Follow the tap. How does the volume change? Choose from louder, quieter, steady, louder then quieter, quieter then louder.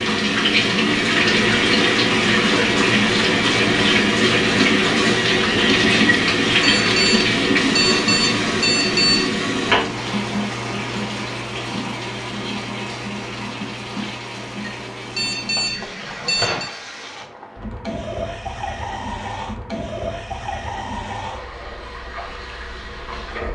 quieter.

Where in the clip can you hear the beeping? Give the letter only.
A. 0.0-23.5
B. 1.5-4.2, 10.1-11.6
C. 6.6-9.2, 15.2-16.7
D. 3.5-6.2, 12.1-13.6
C.